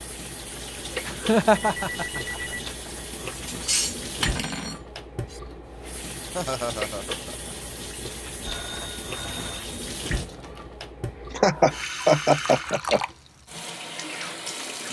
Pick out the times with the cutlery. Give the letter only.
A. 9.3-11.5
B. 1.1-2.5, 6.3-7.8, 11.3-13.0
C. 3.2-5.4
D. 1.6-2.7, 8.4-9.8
C.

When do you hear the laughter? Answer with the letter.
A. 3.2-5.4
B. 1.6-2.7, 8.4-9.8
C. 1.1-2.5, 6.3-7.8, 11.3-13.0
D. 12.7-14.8
C.